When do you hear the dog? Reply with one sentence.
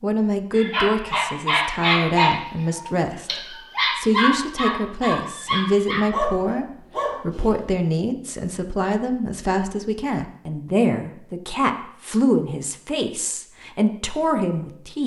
You can hear the dog from 0.6 to 7.7 s.